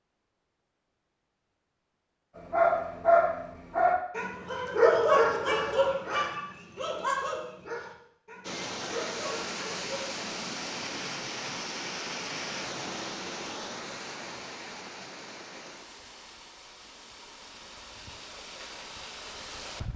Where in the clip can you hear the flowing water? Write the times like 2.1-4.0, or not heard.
8.4-19.9.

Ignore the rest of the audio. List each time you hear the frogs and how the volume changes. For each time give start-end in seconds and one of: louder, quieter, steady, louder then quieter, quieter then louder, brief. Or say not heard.
not heard.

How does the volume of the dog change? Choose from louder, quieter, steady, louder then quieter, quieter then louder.
quieter.